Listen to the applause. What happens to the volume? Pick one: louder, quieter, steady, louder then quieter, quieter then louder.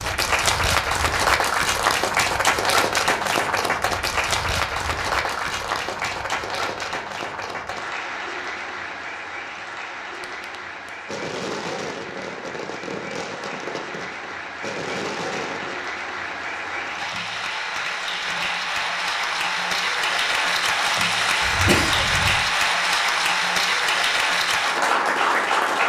quieter then louder.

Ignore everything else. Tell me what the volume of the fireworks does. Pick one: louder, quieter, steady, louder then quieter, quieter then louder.
quieter then louder.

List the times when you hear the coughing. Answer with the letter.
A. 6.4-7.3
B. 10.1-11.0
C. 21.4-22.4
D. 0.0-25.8
C.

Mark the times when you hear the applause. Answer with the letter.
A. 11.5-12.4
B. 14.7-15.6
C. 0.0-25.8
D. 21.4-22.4
C.